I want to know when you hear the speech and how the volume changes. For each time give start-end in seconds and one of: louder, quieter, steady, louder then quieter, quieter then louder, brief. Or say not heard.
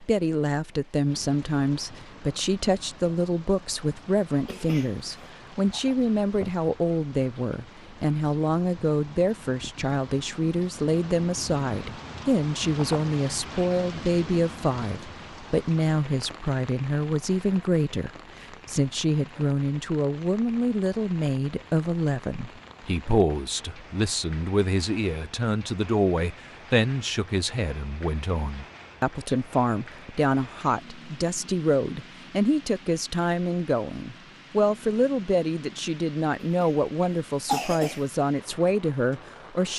0.0-39.7 steady.